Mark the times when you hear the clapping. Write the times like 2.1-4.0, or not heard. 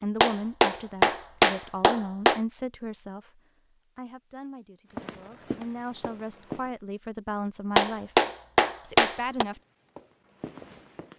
0.2-2.4, 7.8-9.4.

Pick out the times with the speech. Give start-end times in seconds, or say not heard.
0.0-8.1, 8.8-9.6.